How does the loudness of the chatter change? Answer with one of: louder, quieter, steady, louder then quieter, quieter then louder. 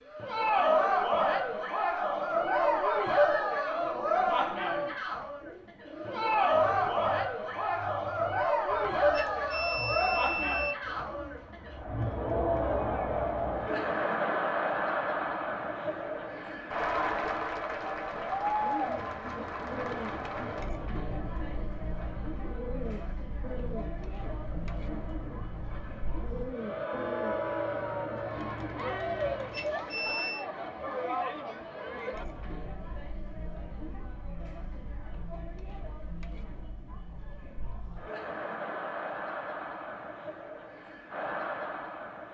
quieter.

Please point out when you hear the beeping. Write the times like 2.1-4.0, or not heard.
9.1-10.8, 29.5-30.4.